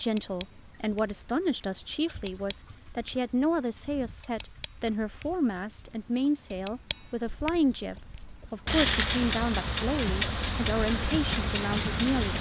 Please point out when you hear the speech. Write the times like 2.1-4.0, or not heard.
0.0-12.3.